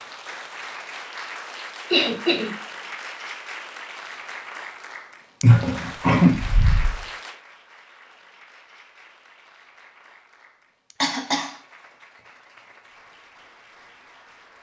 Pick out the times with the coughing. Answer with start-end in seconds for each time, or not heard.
1.9-2.5, 5.4-7.0, 11.0-11.5.